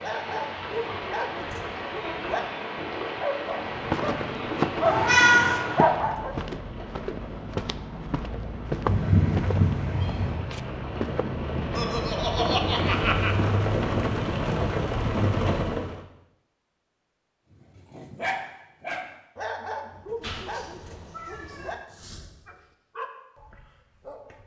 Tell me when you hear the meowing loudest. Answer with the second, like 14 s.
5 s.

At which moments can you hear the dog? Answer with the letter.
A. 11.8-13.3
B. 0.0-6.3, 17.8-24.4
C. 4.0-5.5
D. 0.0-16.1
B.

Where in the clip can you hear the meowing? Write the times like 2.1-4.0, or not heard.
4.8-5.6, 8.8-10.4, 20.2-21.8.